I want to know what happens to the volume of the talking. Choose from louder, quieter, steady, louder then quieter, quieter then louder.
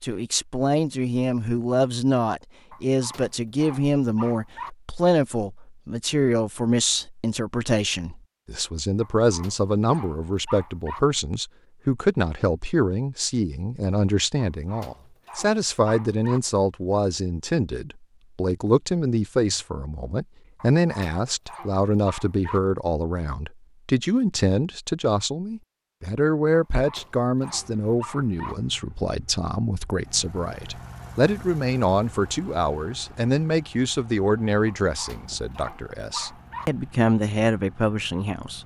steady.